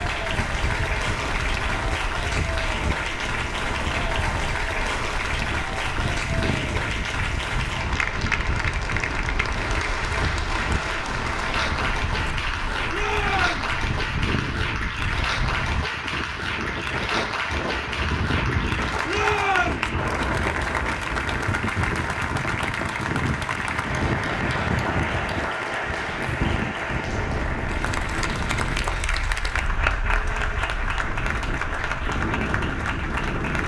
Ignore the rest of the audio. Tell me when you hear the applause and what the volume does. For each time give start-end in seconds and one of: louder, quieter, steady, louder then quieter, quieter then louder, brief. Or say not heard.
0.0-33.6 steady.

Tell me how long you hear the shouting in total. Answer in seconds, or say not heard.
2 s.